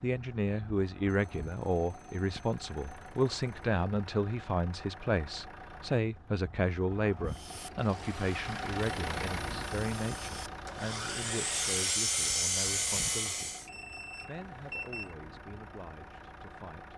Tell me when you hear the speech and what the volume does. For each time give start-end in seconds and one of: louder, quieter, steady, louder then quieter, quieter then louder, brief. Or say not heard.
0.0-13.6 quieter
14.2-16.9 brief.